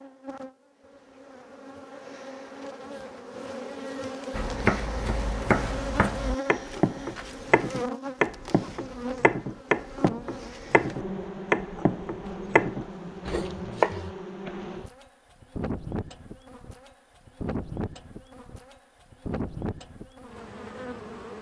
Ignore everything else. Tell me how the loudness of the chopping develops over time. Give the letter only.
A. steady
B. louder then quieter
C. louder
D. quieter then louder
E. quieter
A.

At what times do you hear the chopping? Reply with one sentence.
You can hear the chopping from 4.3 to 14.1 s.